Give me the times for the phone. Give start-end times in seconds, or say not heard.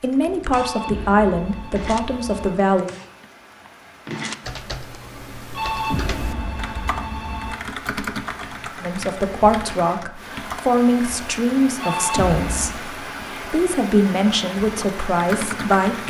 0.5-2.5, 5.5-7.5, 11.8-12.8.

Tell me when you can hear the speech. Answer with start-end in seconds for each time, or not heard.
0.0-2.9, 8.8-16.0.